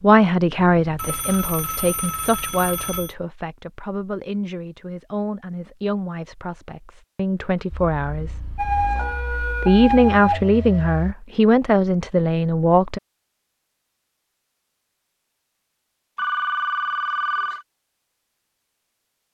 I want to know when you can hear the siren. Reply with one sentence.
You can hear the siren from 8.6 to 10.8 s.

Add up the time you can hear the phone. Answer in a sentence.
The phone can be heard for 4 seconds in total.